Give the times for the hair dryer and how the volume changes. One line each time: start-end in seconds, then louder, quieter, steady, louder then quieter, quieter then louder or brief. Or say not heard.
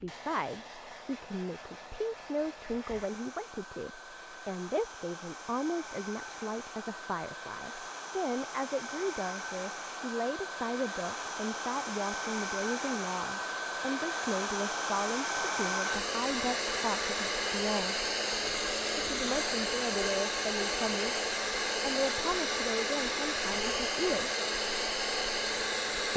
0.0-26.1 louder.